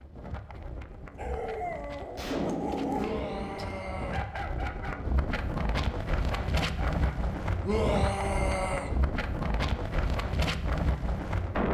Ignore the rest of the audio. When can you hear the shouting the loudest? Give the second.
8 s.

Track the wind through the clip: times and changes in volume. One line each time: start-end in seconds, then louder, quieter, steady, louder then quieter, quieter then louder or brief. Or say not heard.
0.0-11.6 louder.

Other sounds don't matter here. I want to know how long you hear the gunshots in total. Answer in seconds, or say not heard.
2 s.